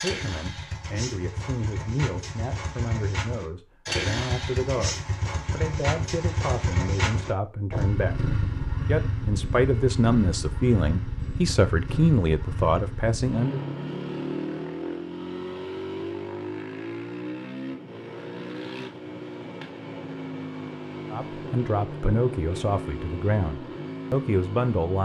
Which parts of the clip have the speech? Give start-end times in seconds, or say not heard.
0.0-13.6, 21.1-25.0.